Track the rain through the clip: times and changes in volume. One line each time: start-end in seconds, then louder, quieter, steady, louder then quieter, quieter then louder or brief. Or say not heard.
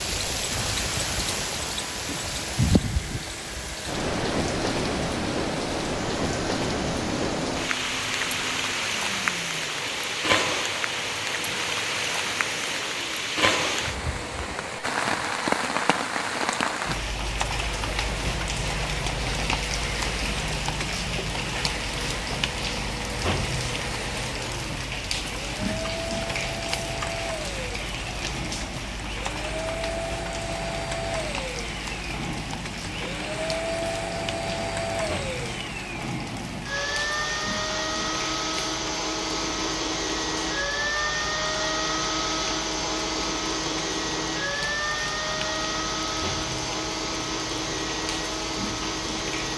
0.0-49.5 quieter.